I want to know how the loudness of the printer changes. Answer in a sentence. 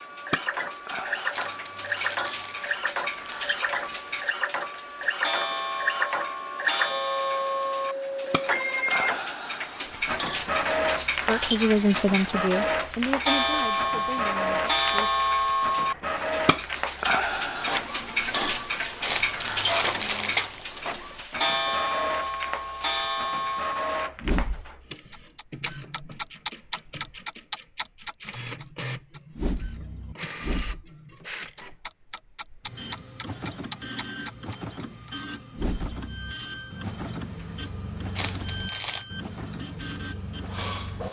The volume of the printer goes down.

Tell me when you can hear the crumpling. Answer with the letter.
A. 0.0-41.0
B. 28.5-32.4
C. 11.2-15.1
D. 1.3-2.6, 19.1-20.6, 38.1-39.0
D.